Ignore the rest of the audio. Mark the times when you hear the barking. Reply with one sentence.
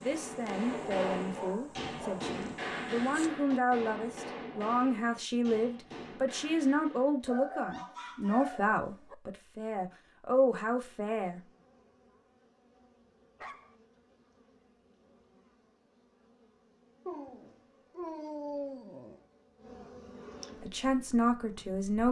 You can hear the barking from 0.7 to 2.4 s, from 7.2 to 9.2 s, from 13.3 to 13.8 s and from 17.1 to 19.2 s.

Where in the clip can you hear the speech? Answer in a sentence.
You can hear the speech from 0.0 to 11.4 s and from 20.6 to 22.0 s.